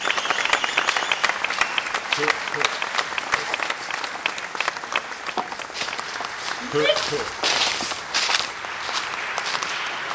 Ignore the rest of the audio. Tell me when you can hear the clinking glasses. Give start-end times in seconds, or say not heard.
not heard.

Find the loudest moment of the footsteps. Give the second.
8 s.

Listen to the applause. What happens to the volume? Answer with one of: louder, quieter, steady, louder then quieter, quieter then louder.
quieter.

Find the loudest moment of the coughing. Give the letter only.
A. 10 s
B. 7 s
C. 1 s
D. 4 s
B.